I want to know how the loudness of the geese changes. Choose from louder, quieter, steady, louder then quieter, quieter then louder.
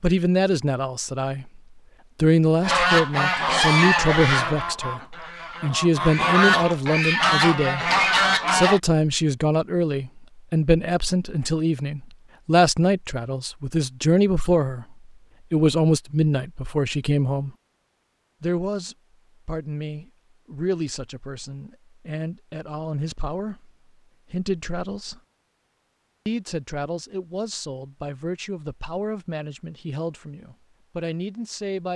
quieter then louder.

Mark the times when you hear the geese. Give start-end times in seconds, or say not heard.
2.6-8.8.